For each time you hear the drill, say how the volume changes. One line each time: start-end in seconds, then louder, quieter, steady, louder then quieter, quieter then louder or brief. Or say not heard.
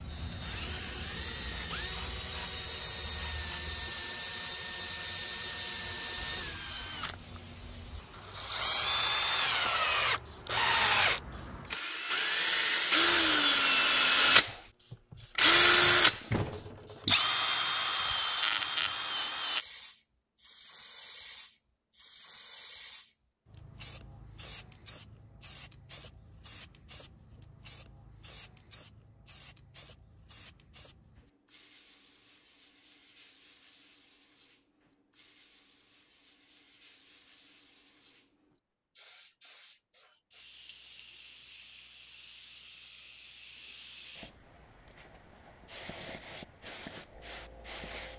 0.0-19.6 louder.